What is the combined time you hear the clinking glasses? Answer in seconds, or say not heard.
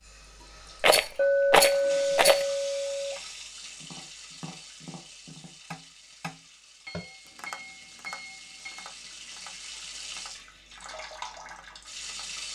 4 s.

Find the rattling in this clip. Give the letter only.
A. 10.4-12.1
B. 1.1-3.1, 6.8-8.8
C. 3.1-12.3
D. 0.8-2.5
D.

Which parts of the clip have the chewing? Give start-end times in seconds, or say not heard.
not heard.